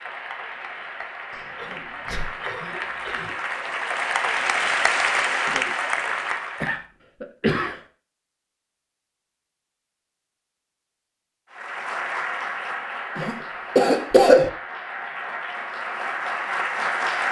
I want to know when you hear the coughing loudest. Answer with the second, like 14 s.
14 s.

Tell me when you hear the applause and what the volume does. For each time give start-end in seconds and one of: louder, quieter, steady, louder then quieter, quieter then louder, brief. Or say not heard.
0.0-6.8 louder
11.5-17.2 quieter then louder.